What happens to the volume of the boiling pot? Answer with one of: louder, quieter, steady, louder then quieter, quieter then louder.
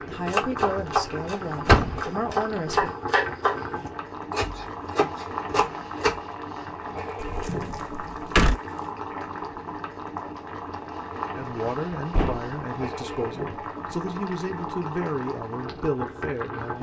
steady.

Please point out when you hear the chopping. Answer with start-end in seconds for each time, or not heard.
0.2-6.2.